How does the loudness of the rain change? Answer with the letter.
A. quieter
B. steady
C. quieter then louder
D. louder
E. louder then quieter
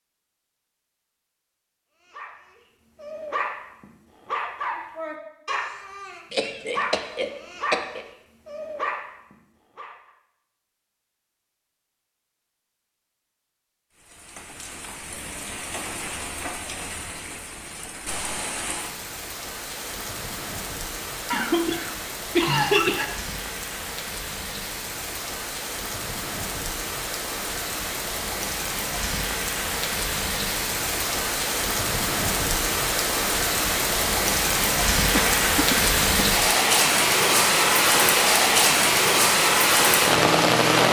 D.